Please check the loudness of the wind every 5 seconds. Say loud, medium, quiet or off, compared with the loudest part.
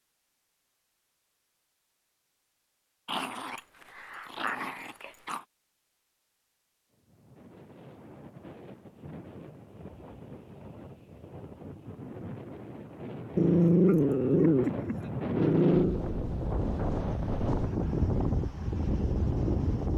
off, quiet, medium, loud.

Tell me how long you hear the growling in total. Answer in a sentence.
You can hear the growling for 5 seconds altogether.